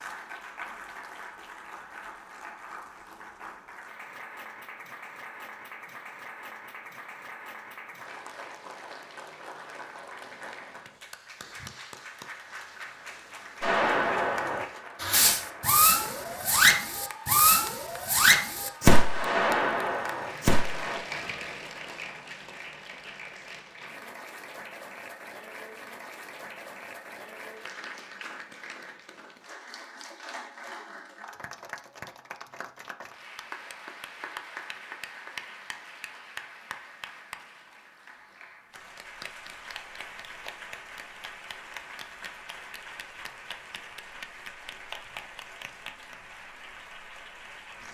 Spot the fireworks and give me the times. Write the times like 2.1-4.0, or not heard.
13.6-21.0.